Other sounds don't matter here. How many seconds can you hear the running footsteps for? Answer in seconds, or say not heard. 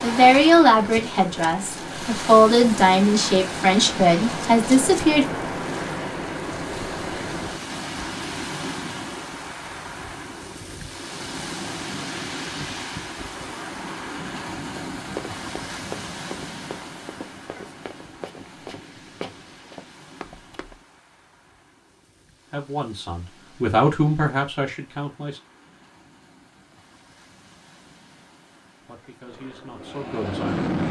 6 s.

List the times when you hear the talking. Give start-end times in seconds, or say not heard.
0.0-5.2, 22.5-25.4, 28.9-30.6.